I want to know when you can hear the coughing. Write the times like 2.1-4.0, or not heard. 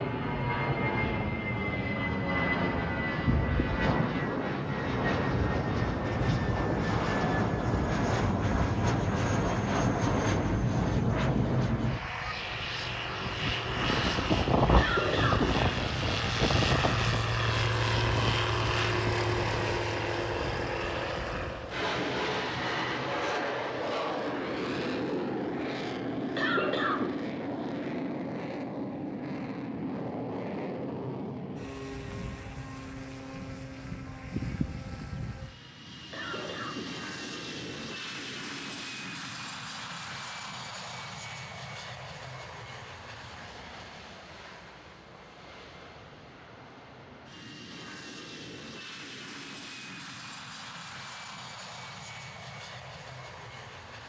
14.8-15.7, 26.4-27.2, 36.1-37.0.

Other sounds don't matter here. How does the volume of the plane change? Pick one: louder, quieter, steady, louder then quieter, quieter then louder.
quieter.